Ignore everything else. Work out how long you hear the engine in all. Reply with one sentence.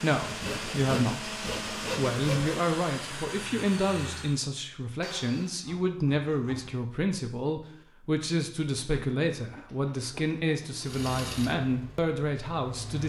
The engine can be heard for 7 seconds in total.